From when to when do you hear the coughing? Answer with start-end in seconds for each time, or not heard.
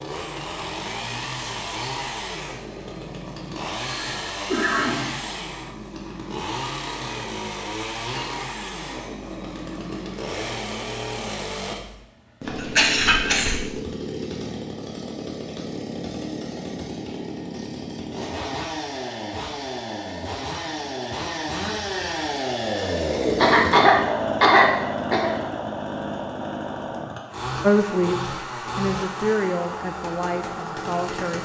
4.0-5.2, 12.4-13.7, 23.4-25.3.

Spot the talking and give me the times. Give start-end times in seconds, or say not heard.
27.6-31.4.